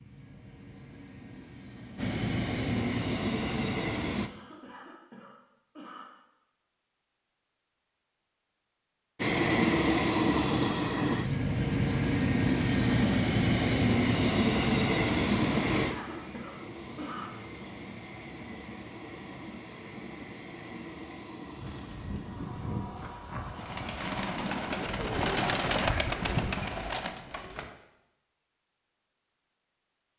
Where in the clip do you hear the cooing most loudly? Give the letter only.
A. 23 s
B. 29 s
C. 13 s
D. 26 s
D.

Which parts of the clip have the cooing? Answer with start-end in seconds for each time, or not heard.
21.6-27.8.